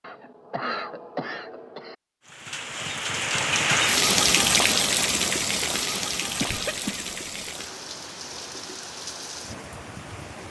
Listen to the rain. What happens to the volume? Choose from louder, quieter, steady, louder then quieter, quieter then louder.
quieter.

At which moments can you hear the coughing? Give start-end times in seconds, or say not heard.
0.0-1.9, 6.4-7.5.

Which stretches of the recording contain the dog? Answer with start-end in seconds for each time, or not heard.
not heard.